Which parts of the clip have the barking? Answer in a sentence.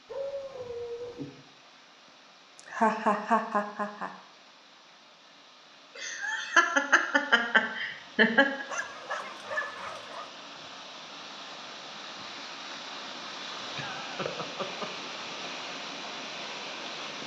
You can hear the barking from 0.1 to 1.3 s and from 8.7 to 10.2 s.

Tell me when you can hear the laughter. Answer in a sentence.
The laughter can be heard from 2.6 to 4.1 s, from 6.0 to 8.7 s and from 13.8 to 15.1 s.